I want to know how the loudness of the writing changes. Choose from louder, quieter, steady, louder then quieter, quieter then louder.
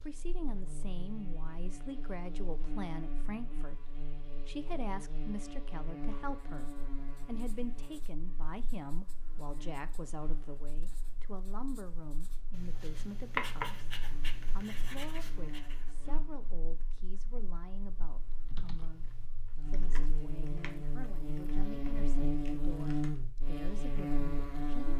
louder then quieter.